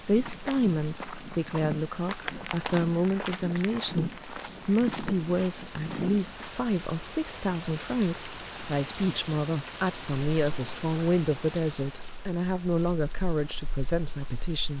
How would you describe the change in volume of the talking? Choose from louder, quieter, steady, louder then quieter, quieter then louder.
steady.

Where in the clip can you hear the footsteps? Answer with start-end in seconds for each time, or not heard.
0.1-6.5.